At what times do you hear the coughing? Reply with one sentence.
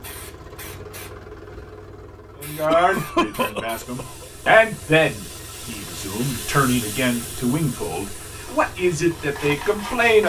You can hear the coughing from 2.6 to 4.5 s.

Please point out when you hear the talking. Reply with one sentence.
You can hear the talking from 2.4 to 10.2 s.